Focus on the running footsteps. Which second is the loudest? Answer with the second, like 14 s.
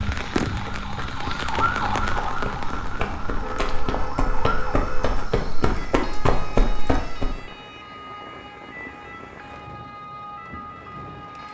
6 s.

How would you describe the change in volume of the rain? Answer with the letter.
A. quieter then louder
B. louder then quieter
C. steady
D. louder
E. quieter
E.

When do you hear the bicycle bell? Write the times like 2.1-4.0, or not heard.
not heard.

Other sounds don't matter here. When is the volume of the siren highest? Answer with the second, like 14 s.
2 s.